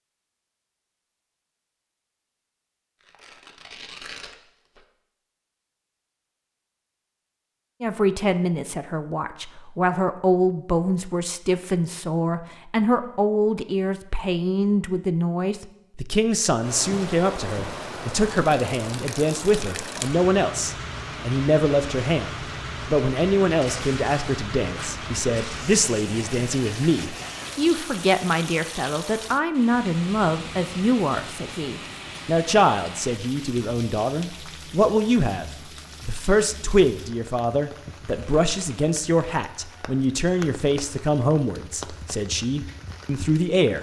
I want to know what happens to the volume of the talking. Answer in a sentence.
The volume of the talking stays about the same.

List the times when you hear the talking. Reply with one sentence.
You can hear the talking from 7.8 to 43.7 s.